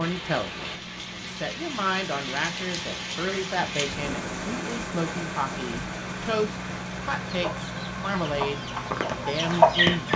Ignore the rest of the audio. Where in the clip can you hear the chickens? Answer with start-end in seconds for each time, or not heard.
7.2-10.1.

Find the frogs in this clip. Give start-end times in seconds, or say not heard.
not heard.